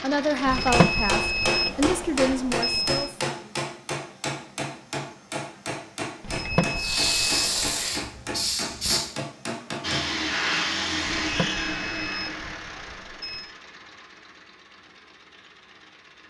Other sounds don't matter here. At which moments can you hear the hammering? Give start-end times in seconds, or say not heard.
0.5-10.0.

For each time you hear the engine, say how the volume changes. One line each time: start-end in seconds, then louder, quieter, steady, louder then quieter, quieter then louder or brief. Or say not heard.
0.0-1.6 brief
9.8-16.2 quieter.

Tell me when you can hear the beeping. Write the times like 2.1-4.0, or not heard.
0.5-3.1, 6.2-7.8, 11.1-13.5.